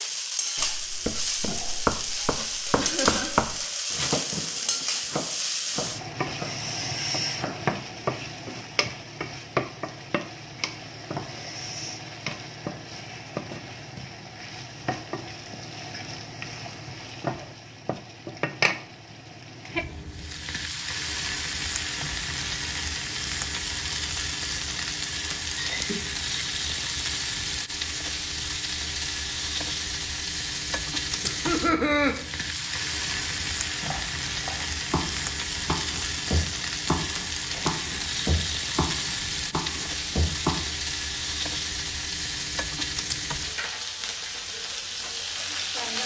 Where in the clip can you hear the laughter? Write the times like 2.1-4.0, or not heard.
2.8-3.4, 25.6-26.2, 31.2-32.1.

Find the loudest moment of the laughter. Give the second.
32 s.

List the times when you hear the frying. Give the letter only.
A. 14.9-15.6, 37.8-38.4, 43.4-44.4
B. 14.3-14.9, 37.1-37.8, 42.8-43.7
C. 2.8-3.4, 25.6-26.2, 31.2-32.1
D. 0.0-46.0
D.